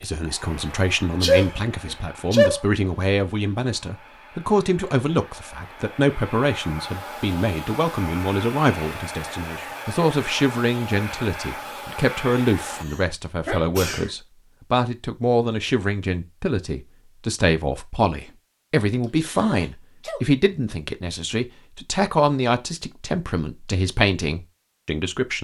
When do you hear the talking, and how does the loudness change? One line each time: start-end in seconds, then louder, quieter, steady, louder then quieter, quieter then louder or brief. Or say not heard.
0.0-25.3 steady.